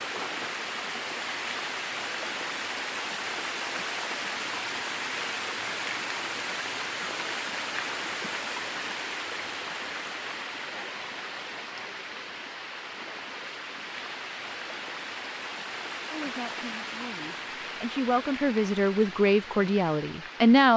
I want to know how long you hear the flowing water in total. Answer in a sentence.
The flowing water can be heard for 21 seconds in total.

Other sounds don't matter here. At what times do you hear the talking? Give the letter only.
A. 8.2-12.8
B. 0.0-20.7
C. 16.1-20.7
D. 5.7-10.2
C.